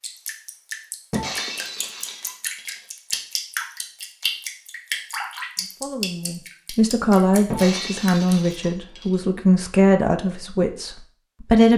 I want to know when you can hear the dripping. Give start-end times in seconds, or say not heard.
0.0-8.6.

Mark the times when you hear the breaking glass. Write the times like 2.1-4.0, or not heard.
1.1-2.9, 7.5-9.2.